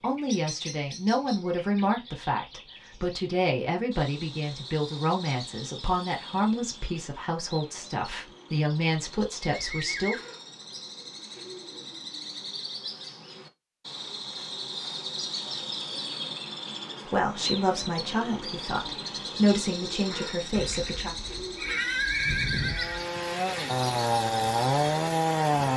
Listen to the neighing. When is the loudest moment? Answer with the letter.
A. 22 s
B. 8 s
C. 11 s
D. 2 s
A.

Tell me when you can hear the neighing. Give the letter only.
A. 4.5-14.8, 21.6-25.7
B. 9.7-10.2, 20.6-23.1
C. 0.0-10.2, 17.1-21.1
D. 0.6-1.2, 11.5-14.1
B.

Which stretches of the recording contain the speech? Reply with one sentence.
You can hear the speech from 0.0 to 10.2 s and from 17.1 to 21.1 s.